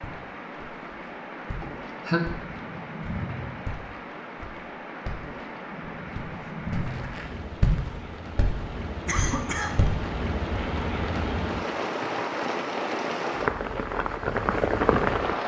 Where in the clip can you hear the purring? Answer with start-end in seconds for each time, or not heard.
not heard.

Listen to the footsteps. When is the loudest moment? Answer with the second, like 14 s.
8 s.